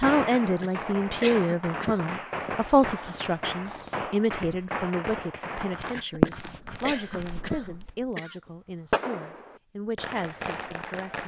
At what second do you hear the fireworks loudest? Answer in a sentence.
The volume of the fireworks peaks at 6 seconds.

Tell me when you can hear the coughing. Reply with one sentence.
The coughing can be heard from 0.3 to 2.1 s and from 5.9 to 8.3 s.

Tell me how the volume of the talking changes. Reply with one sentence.
The loudness of the talking goes down.